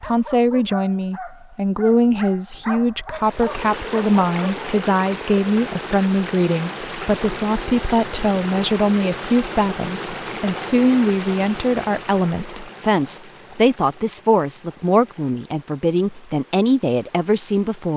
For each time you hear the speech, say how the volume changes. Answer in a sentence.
The speech can be heard from 0.0 to 17.9 s, at a steady volume.